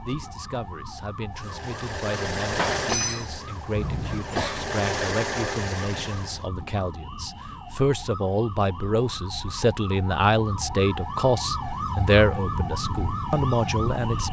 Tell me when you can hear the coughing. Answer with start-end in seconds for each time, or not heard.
3.8-4.6.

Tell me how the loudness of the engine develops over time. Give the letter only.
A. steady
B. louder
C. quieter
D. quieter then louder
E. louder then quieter
D.